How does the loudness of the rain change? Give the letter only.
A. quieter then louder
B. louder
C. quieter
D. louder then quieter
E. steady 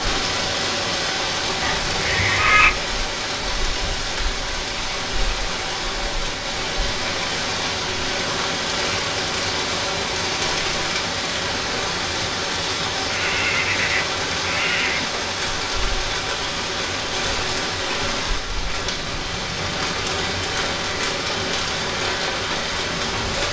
E.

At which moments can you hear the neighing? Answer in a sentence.
The neighing can be heard from 1.6 to 2.8 s and from 13.1 to 15.1 s.